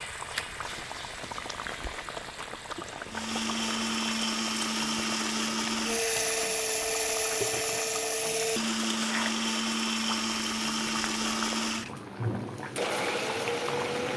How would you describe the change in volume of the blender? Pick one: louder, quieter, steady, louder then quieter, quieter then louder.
steady.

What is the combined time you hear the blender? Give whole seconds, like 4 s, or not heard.
11 s.